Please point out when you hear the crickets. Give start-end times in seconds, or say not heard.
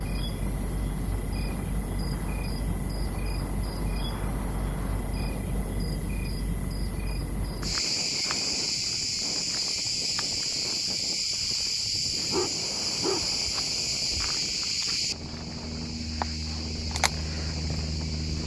0.0-18.4.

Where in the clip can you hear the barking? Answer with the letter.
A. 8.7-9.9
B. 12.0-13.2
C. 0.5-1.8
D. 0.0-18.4
B.